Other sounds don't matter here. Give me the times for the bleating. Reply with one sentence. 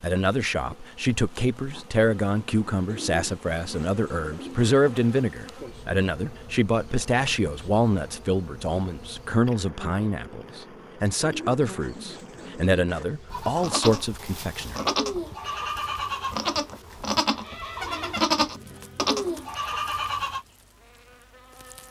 You can hear the bleating from 13.3 to 20.4 s.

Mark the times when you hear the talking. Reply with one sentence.
The talking can be heard from 0.0 to 14.8 s.